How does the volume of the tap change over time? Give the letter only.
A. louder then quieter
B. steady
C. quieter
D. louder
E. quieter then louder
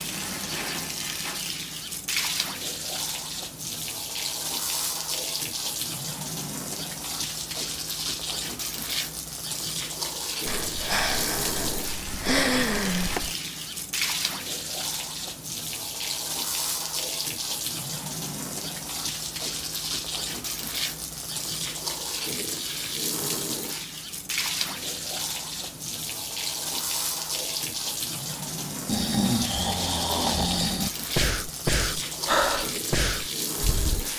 B.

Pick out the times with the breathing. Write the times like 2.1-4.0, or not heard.
10.4-13.3, 28.9-34.1.